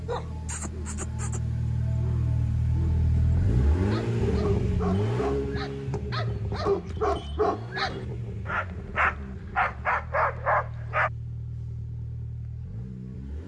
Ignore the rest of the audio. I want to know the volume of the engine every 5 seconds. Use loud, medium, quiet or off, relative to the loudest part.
loud, medium, medium.